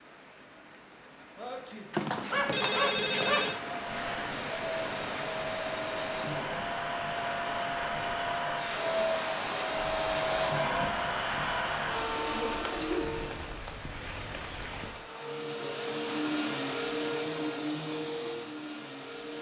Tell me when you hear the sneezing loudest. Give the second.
13 s.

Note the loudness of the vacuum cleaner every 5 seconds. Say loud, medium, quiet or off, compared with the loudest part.
medium, loud, loud, loud.